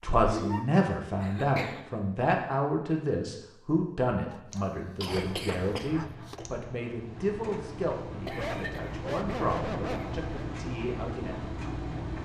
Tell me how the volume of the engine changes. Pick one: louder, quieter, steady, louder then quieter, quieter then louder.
louder.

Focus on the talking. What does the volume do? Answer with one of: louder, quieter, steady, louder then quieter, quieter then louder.
quieter.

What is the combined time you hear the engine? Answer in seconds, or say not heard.
7 s.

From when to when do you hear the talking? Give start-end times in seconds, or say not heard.
0.0-11.5.